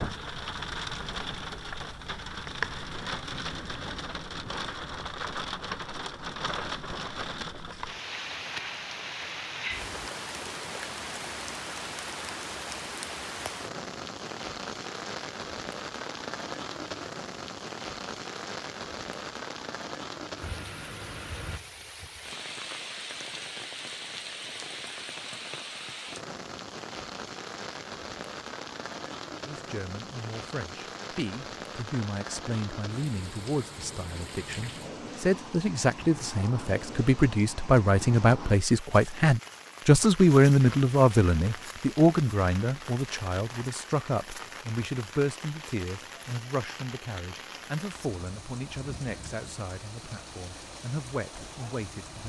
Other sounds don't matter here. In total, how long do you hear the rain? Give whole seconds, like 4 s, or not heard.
52 s.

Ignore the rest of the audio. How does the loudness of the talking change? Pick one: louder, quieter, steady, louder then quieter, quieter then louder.
louder then quieter.